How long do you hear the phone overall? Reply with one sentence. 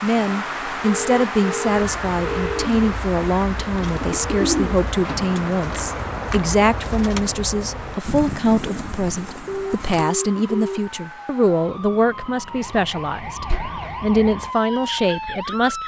The phone can be heard for 3 seconds in total.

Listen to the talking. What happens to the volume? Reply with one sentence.
The volume of the talking stays about the same.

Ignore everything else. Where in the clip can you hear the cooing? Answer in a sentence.
You can hear the cooing from 1.6 to 10.1 s.